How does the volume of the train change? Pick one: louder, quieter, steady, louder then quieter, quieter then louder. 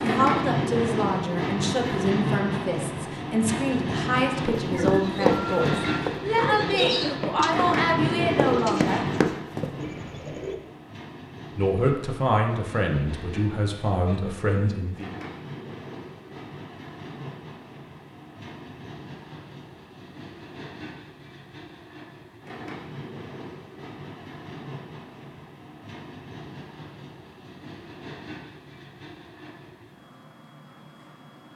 quieter.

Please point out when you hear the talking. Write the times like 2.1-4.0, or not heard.
0.0-9.1, 11.6-15.2.